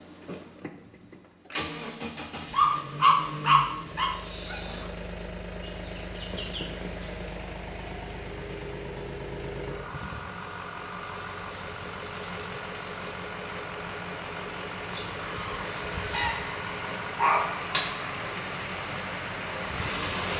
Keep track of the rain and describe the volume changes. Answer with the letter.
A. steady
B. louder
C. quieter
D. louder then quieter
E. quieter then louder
B.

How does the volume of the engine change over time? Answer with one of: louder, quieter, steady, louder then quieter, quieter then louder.
steady.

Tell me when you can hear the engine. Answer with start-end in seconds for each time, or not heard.
0.0-20.3.